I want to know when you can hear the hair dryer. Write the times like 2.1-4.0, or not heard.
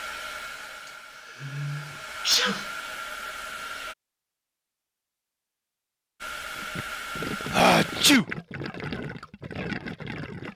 0.0-4.0, 6.2-8.2.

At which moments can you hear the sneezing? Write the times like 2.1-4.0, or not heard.
1.4-2.6, 7.5-8.2.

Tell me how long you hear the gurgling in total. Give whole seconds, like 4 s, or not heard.
4 s.